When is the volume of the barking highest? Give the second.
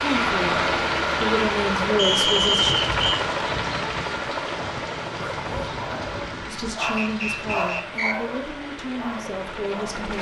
8 s.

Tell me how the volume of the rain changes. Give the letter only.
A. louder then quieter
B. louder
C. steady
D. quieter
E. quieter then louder
D.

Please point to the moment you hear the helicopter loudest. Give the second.
3 s.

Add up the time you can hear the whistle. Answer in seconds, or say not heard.
3 s.